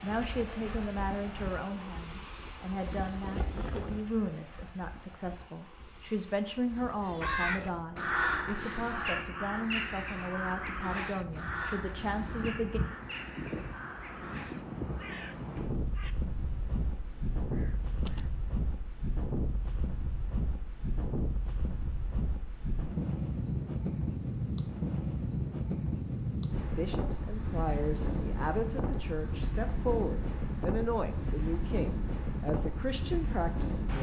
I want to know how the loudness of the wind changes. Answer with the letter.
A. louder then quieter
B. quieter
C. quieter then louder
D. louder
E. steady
D.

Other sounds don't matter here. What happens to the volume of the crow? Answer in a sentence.
The volume of the crow goes down.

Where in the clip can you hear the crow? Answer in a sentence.
You can hear the crow from 7.0 to 18.3 s.